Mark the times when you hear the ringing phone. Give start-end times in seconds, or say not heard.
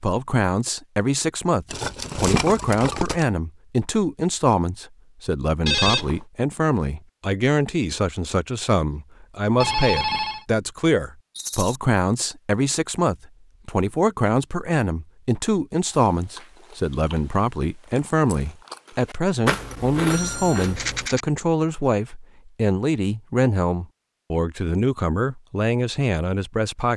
5.7-6.2, 9.6-10.4, 20.1-20.8.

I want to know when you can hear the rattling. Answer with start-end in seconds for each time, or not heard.
1.7-3.2, 11.3-11.8, 20.6-21.2.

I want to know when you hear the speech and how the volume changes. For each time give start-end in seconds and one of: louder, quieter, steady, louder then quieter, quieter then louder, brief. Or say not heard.
0.0-26.9 steady.